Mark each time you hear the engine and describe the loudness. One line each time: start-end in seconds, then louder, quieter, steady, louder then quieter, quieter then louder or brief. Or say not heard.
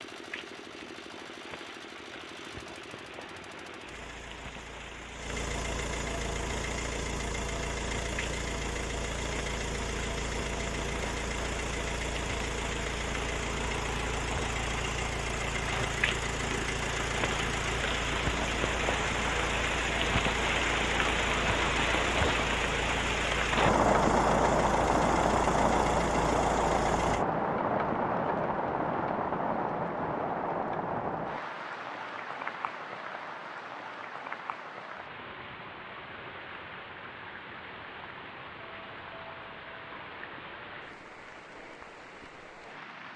0.0-27.2 louder.